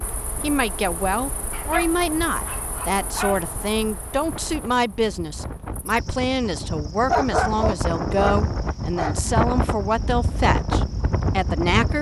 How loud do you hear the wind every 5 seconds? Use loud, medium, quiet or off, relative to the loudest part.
quiet, loud, loud.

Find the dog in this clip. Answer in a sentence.
The dog can be heard from 1.5 to 3.4 s and from 7.0 to 9.3 s.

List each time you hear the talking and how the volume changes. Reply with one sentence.
You can hear the talking from 0.4 to 11.9 s, at a steady volume.